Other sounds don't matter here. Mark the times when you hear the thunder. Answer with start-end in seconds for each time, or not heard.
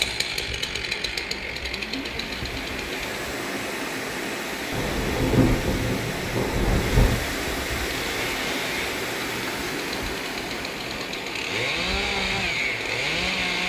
4.7-7.2.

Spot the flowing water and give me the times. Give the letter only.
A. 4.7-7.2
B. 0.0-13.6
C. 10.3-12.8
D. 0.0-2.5
B.